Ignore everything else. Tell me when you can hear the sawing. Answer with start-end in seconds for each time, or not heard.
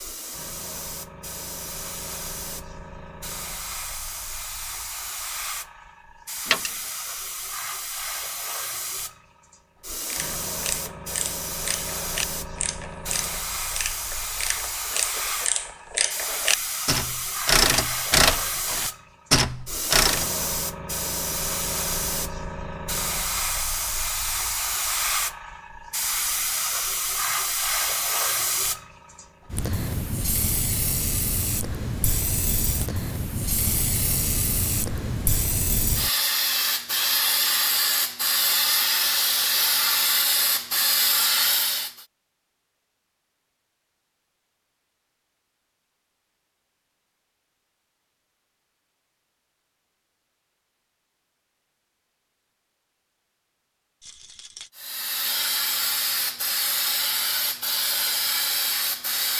not heard.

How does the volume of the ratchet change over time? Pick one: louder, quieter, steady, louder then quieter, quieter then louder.
louder.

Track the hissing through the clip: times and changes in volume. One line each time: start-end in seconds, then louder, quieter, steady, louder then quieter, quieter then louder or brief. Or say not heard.
0.0-42.0 louder
54.8-59.3 steady.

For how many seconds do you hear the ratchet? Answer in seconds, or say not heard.
10 s.